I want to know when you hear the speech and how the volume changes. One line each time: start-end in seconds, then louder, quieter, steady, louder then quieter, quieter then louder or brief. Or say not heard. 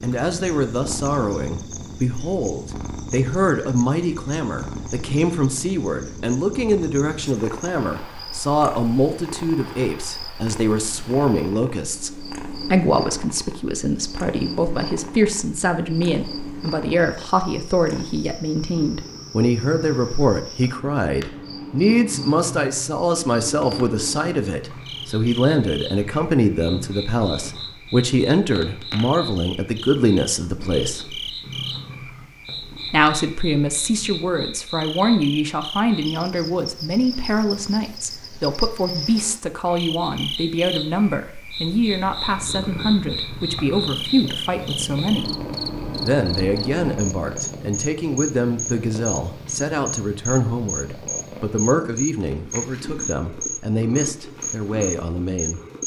0.0-12.1 steady
12.7-31.1 steady
32.9-45.3 steady
46.0-55.6 steady.